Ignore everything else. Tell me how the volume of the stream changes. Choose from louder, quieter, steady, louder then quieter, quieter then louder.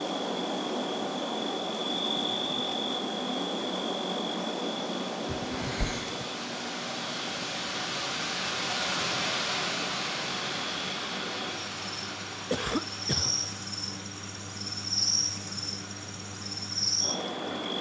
louder then quieter.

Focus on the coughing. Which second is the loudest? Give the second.
13 s.